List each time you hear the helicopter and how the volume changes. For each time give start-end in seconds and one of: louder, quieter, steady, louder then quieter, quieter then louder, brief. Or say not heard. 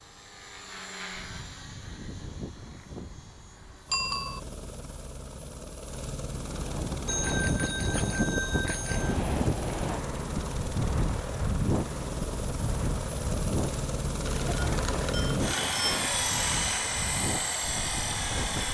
0.0-18.7 louder.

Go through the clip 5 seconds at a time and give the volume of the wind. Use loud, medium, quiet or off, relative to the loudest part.
off, loud, loud, medium.